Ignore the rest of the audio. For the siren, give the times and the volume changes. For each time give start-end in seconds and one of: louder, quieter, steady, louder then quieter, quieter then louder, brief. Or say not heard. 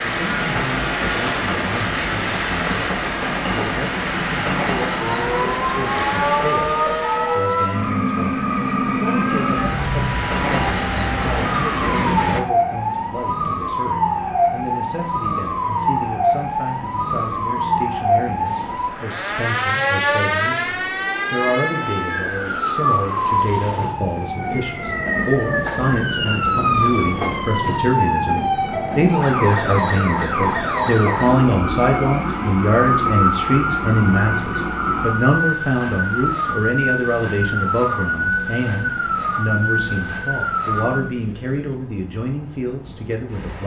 4.8-41.1 steady.